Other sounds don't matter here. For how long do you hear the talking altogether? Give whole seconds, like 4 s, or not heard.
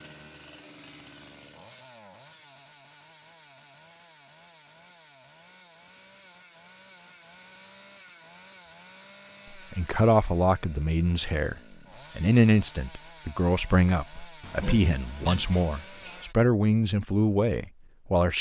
8 s.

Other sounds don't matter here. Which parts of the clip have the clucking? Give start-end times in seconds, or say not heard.
not heard.